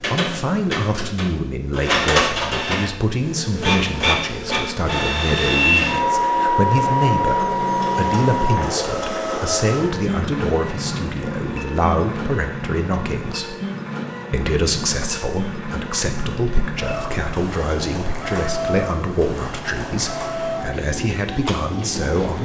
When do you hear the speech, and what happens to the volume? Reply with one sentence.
The speech can be heard from 0.0 to 13.6 s, at a steady volume; and from 14.3 to 22.4 s, at a steady volume.